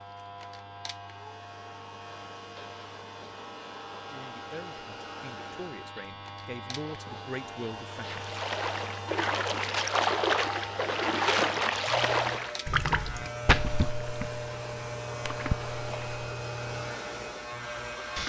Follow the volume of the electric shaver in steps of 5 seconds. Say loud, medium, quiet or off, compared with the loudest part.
medium, medium, loud, loud.